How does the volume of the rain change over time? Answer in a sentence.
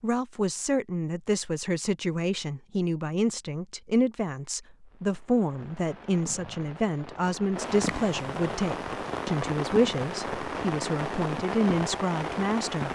The volume of the rain goes up.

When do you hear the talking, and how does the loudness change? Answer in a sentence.
The talking can be heard from 0.0 to 12.9 s, at a steady volume.